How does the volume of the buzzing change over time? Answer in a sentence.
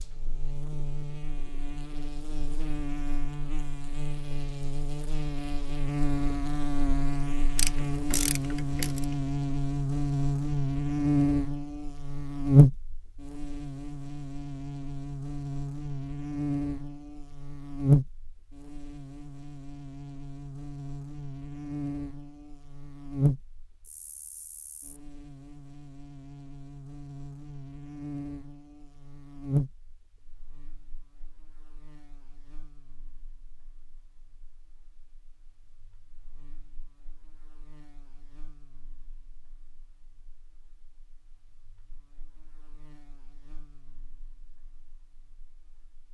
The volume of the buzzing goes up, then down.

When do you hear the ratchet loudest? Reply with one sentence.
The volume of the ratchet peaks at 8 seconds.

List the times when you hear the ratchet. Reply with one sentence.
You can hear the ratchet from 7.5 to 9.2 s.